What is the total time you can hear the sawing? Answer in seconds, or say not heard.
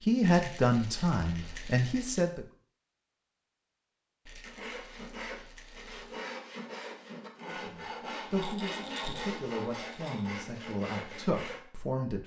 7 s.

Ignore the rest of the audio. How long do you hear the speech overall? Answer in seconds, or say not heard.
7 s.